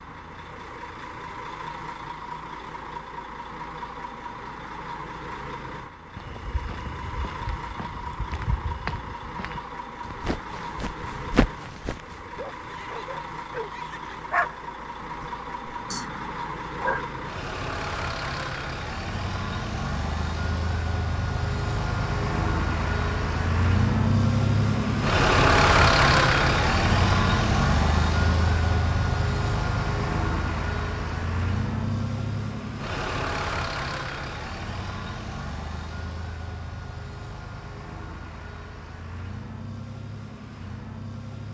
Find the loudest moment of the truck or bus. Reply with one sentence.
The volume of the truck or bus peaks at 26 seconds.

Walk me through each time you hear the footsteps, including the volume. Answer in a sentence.
The footsteps can be heard from 6.2 to 12.4 s, getting louder.